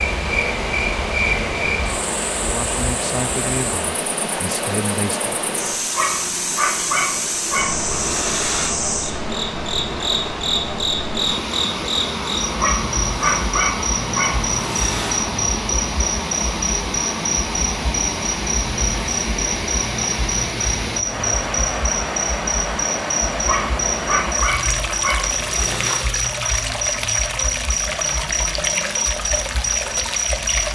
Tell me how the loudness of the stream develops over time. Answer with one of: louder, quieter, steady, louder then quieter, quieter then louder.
steady.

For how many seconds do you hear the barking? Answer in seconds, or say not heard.
8 s.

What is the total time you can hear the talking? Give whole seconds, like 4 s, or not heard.
3 s.